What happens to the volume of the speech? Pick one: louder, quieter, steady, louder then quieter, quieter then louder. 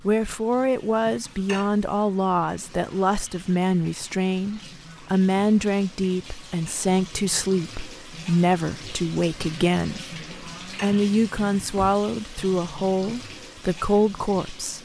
steady.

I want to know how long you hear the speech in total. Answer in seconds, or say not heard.
15 s.